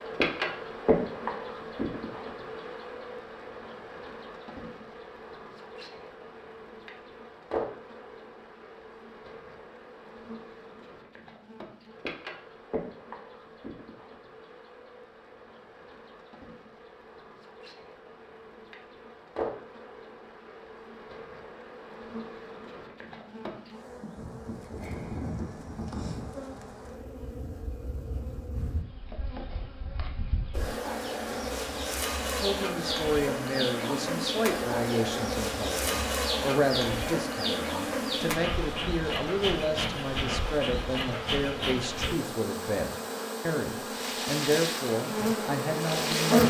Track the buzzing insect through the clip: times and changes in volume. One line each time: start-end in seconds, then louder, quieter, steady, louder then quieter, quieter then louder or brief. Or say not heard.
0.0-46.4 quieter then louder.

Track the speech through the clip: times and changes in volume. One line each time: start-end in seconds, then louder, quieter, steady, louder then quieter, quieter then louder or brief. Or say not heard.
32.4-46.4 steady.